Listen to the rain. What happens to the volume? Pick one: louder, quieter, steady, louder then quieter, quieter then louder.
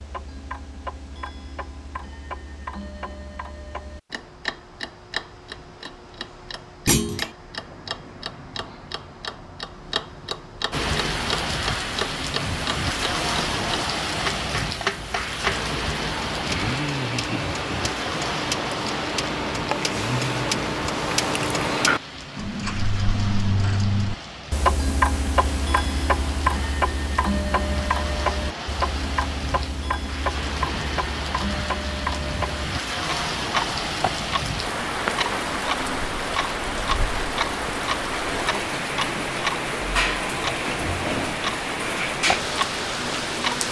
quieter then louder.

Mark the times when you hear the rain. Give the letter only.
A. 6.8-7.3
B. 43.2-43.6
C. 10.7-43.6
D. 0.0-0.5
C.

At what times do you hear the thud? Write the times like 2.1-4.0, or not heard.
6.8-7.3.